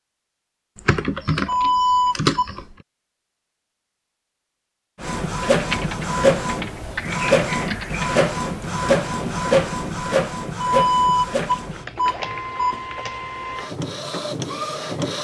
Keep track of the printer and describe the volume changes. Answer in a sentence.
The loudness of the printer goes down.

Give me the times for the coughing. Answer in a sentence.
You can't hear the coughing here.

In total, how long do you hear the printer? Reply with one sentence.
The printer can be heard for 10 seconds in total.